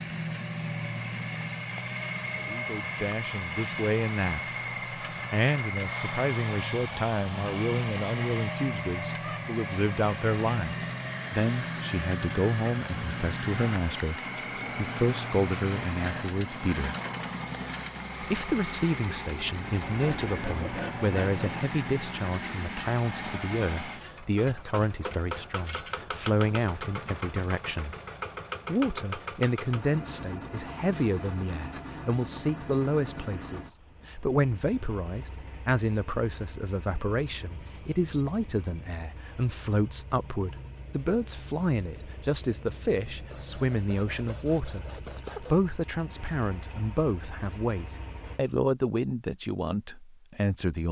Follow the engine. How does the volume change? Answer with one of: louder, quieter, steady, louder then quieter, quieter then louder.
quieter.